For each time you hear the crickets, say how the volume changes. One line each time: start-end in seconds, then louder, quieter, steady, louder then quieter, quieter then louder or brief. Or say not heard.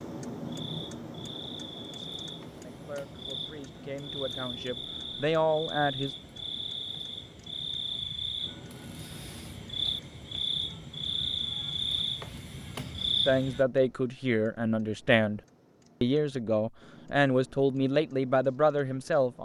0.0-13.7 louder.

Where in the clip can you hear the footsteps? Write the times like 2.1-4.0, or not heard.
not heard.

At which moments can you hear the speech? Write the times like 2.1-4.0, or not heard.
2.5-6.1, 13.2-15.4, 16.0-19.4.